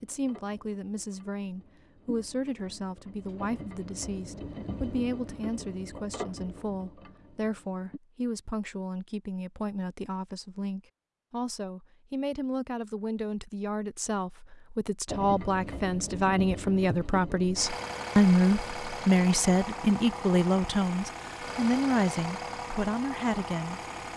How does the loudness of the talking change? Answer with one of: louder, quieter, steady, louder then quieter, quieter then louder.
louder.